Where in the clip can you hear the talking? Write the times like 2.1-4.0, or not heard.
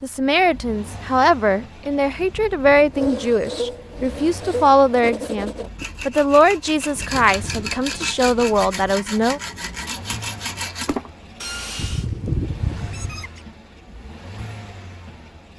0.0-9.4.